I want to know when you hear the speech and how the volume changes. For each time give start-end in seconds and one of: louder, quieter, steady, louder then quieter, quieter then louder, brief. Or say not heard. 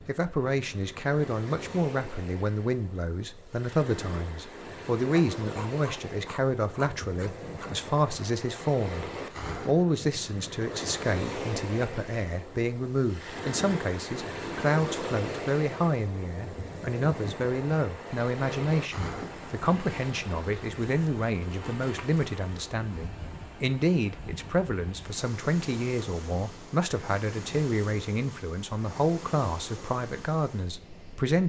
0.0-31.4 steady.